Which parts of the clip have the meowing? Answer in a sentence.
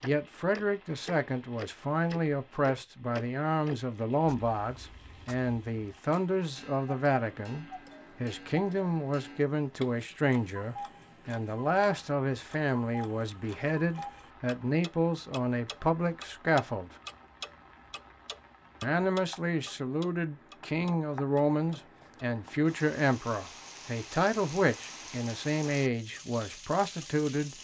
The meowing can't be heard in this clip.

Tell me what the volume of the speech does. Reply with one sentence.
The volume of the speech stays about the same.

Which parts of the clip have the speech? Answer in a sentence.
You can hear the speech from 0.0 to 16.9 s and from 18.8 to 27.5 s.